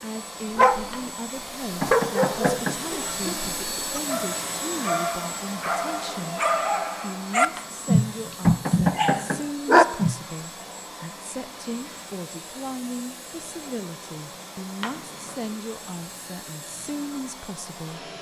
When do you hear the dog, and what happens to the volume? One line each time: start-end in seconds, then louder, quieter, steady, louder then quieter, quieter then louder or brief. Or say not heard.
0.6-1.0 brief
1.8-10.2 louder.